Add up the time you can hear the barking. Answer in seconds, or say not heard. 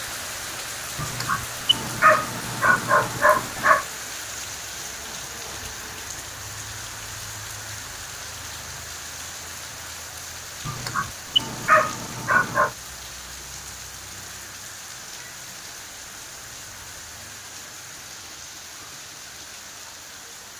5 s.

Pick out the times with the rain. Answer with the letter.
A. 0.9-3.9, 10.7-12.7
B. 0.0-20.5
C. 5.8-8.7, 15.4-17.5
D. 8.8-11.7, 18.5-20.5
B.